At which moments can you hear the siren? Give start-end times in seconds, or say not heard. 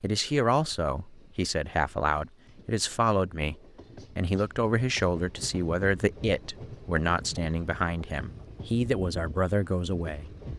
not heard.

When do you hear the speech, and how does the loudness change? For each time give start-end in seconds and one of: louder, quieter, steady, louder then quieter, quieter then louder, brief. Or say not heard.
0.0-10.3 steady.